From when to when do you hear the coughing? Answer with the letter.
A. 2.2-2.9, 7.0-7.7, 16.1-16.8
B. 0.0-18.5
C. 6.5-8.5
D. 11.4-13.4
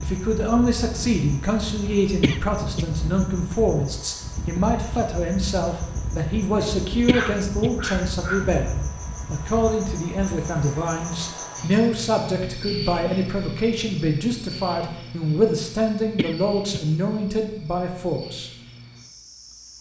A.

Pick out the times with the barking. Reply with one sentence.
The barking can be heard from 6.5 to 8.5 s.